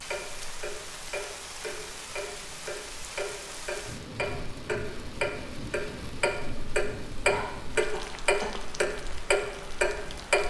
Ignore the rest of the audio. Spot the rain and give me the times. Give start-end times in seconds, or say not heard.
0.0-10.4.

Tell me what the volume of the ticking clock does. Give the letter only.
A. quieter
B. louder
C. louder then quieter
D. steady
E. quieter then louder
B.